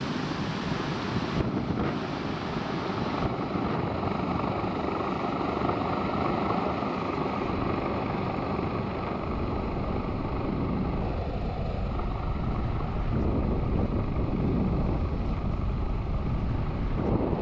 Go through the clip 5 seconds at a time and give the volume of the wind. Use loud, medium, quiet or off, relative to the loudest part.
loud, medium, loud, loud.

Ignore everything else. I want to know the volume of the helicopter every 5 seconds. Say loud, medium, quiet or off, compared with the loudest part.
loud, loud, medium, medium.